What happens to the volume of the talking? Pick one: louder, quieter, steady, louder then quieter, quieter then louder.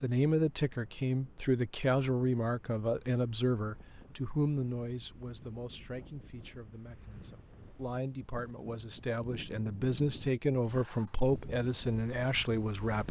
quieter then louder.